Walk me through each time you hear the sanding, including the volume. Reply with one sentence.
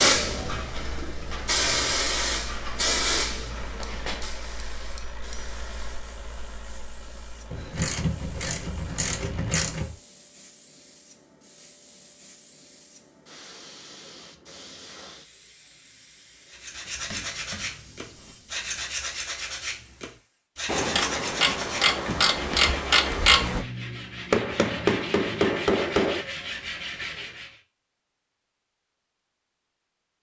You can hear the sanding from 16.5 to 27.6 s, at a steady volume.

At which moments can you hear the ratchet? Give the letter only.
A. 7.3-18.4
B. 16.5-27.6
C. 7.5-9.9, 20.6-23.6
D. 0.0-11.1
C.